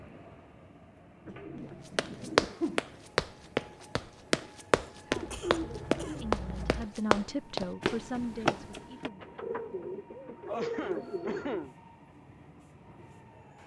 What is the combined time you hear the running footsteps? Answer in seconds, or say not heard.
7 s.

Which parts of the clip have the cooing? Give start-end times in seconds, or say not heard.
1.2-2.5, 5.1-6.9, 9.2-11.7.